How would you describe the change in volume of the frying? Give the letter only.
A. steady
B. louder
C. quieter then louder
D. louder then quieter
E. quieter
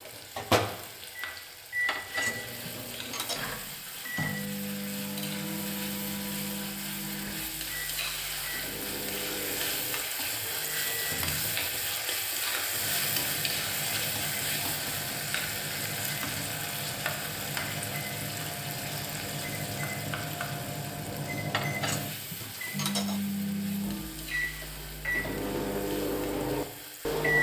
D.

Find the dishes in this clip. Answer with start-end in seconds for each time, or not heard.
1.9-3.4, 21.5-23.2.